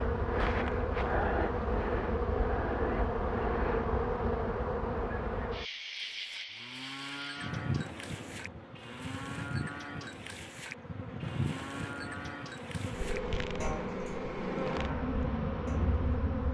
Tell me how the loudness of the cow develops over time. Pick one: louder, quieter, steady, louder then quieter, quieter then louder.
steady.